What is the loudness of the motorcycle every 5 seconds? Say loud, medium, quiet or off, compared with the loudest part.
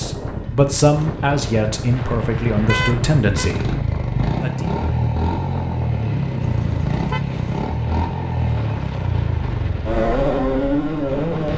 medium, loud, loud.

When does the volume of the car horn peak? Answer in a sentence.
The loudest moment of the car horn is at 3 seconds.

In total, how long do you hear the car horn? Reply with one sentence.
You can hear the car horn for 2 seconds altogether.